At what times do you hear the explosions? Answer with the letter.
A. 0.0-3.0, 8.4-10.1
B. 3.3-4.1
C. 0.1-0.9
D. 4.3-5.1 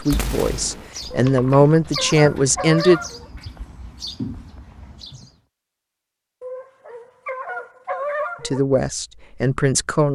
C.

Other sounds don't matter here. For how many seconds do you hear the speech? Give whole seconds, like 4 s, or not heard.
5 s.